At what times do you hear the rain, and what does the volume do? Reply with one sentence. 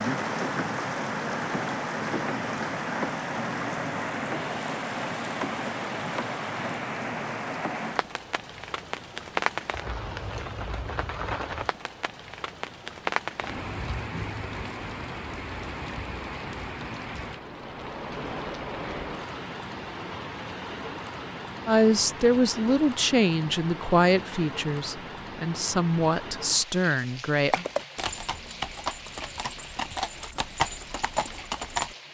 You can hear the rain from 0.0 to 32.0 s, getting quieter.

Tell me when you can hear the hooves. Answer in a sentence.
The hooves can be heard from 27.5 to 31.9 s.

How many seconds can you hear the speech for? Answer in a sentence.
The speech can be heard for 6 seconds in total.